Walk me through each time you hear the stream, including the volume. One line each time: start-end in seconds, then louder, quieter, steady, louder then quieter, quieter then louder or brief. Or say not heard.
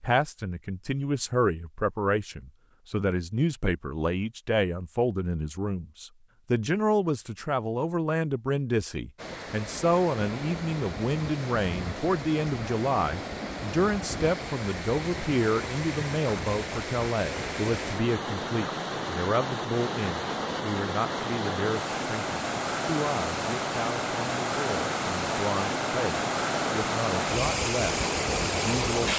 9.2-29.1 louder.